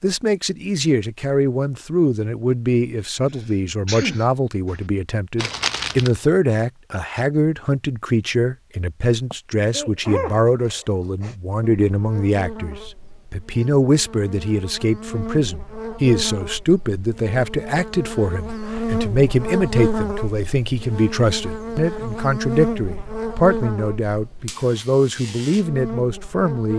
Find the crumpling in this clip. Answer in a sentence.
You can hear the crumpling from 5.3 to 6.1 s.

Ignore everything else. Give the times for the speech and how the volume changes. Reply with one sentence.
The speech can be heard from 0.0 to 26.7 s, at a steady volume.